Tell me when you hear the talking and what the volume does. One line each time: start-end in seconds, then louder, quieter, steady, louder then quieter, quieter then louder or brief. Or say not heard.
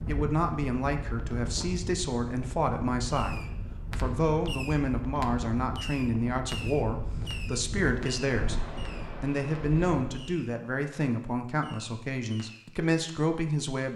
0.1-13.9 steady.